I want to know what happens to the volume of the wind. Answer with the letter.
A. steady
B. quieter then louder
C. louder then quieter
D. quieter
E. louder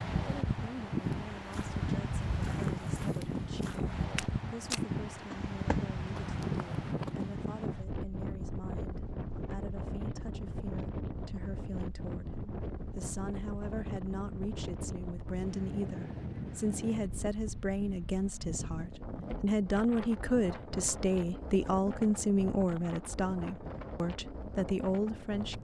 D.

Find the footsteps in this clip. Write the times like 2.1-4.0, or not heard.
1.4-7.2.